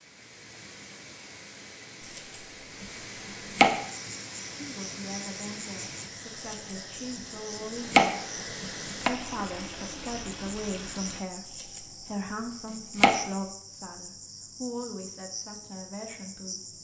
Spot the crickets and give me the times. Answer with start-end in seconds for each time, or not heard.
3.9-16.7.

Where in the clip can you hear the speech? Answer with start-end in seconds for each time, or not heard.
4.5-8.1, 9.0-16.7.